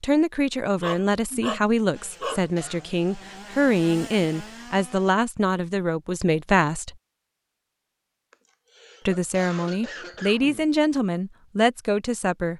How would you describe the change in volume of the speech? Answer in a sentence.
The volume of the speech stays about the same.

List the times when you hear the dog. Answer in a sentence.
You can hear the dog from 0.8 to 2.5 s.